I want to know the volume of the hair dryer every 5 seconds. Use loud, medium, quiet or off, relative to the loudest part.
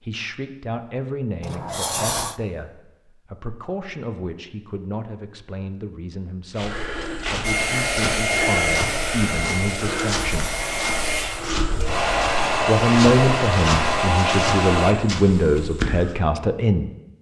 off, loud, loud, off.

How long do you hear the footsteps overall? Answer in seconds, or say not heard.
10 s.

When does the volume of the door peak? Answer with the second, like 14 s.
2 s.